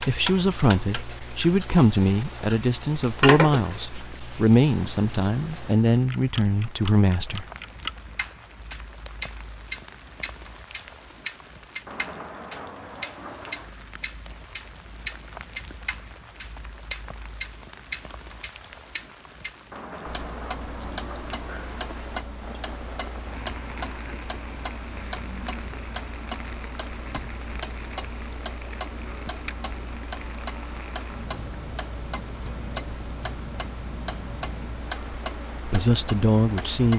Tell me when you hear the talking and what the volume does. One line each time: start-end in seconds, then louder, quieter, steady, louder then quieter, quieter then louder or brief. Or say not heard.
0.1-7.5 steady
35.6-36.9 brief.